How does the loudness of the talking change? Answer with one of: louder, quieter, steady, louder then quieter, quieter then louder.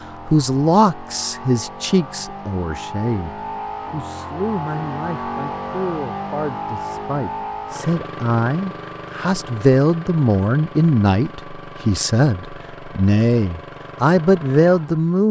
quieter then louder.